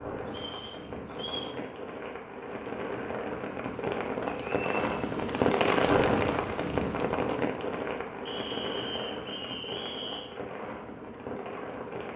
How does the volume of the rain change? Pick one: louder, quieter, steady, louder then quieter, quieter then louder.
louder then quieter.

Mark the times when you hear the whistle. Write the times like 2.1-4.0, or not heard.
0.3-1.6, 4.2-4.8, 8.2-10.3.